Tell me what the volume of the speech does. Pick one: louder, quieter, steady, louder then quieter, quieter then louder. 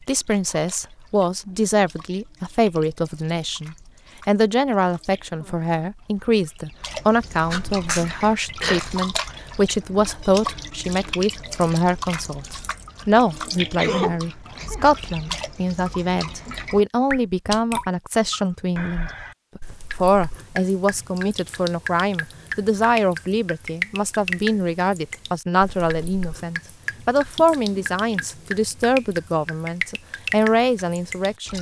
steady.